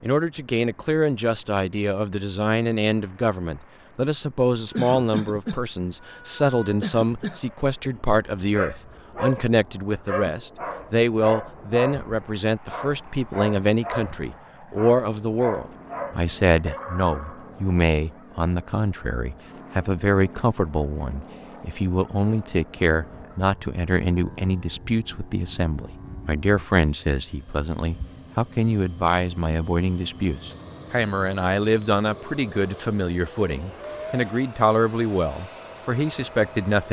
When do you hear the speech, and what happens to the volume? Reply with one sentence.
The speech can be heard from 0.0 to 36.8 s, at a steady volume.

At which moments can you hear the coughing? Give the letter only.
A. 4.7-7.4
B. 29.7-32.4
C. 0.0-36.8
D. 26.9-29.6
A.